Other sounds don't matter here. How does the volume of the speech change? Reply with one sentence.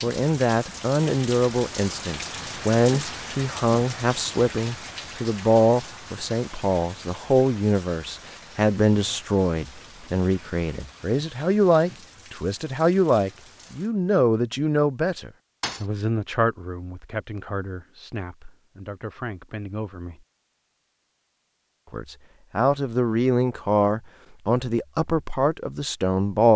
The loudness of the speech goes down, then up.